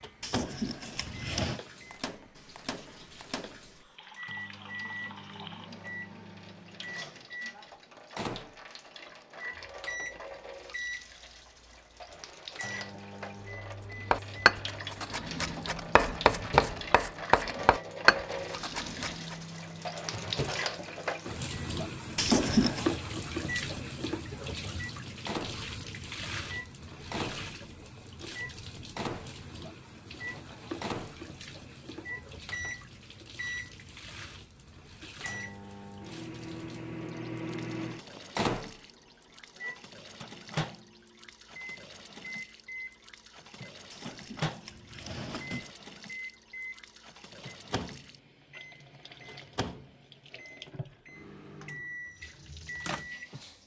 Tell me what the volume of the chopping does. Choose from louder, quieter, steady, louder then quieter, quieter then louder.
louder.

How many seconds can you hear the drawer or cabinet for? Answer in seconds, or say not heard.
4 s.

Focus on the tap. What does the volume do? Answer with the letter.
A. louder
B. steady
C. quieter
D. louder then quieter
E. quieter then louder
D.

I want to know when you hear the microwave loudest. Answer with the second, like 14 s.
38 s.